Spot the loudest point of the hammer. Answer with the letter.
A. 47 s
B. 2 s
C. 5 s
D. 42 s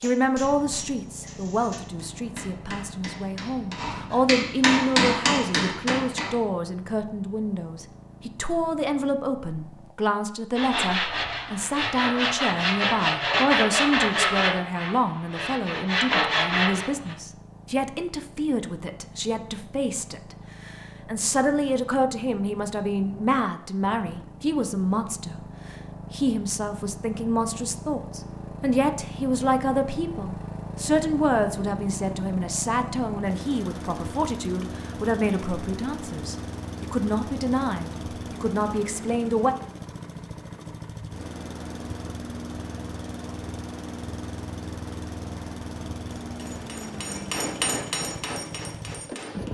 C.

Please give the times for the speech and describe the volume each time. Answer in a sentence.
You can hear the speech from 0.0 to 39.5 s, at a steady volume.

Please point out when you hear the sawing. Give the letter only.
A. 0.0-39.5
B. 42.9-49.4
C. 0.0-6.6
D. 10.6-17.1
D.